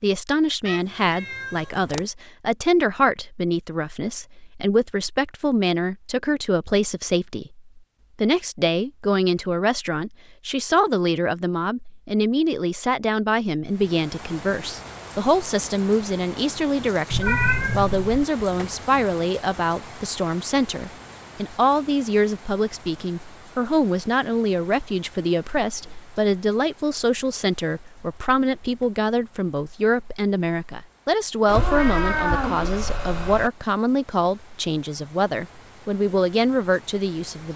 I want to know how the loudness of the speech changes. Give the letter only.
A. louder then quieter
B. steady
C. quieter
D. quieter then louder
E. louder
B.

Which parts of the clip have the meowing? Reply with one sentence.
The meowing can be heard from 0.7 to 2.0 s, from 17.1 to 18.2 s and from 31.4 to 33.5 s.